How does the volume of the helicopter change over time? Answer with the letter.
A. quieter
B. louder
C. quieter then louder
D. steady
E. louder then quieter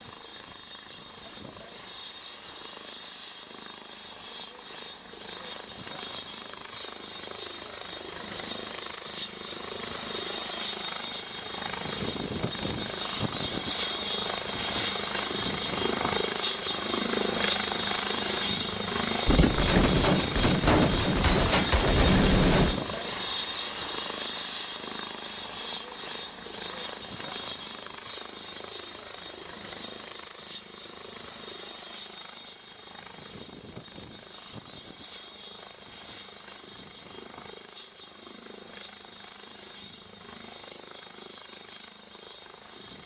E.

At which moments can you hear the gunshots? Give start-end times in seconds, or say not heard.
19.2-22.8.